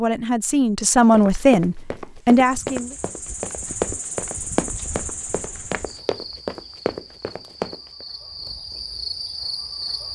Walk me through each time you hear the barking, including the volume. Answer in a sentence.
The barking can't be heard in this clip.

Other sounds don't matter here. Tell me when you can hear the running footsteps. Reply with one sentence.
The running footsteps can be heard from 1.1 to 8.1 s.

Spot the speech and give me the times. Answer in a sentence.
You can hear the speech from 0.0 to 3.0 s.